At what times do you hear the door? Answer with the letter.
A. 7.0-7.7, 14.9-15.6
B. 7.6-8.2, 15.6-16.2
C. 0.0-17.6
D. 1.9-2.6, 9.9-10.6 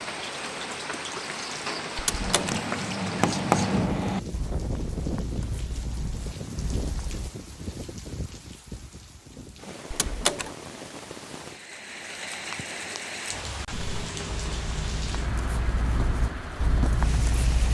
D.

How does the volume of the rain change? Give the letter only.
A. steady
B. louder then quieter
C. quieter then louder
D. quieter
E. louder
C.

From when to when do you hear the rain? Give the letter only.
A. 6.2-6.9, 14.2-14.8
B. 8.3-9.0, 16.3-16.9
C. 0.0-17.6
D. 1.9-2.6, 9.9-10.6
C.